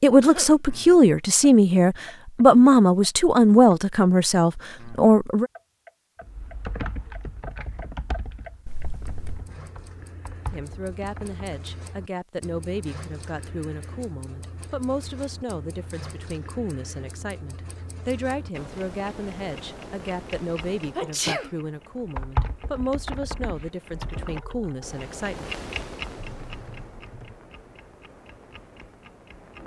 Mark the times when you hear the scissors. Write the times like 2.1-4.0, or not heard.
8.7-9.5.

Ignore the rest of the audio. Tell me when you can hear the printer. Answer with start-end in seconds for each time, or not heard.
not heard.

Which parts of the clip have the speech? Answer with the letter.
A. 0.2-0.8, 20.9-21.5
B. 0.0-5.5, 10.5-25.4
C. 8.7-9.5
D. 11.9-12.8
B.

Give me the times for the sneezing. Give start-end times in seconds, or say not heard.
0.2-0.8, 20.9-21.5.